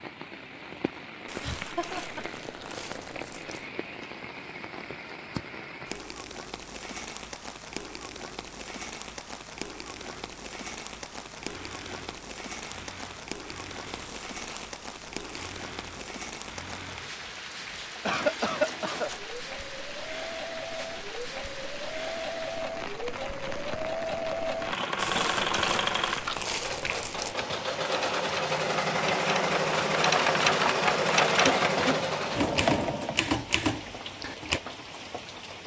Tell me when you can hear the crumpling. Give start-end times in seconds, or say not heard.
1.2-3.7, 13.8-15.6, 24.9-27.4.